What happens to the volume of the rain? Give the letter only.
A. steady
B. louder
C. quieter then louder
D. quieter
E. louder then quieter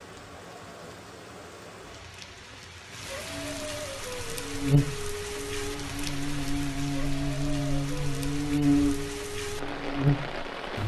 B.